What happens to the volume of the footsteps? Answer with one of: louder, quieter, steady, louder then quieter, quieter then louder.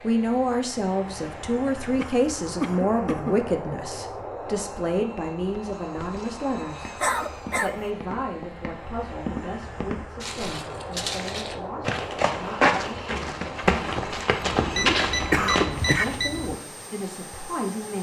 louder.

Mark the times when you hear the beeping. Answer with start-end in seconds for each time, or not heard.
14.5-16.6.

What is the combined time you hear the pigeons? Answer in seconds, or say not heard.
not heard.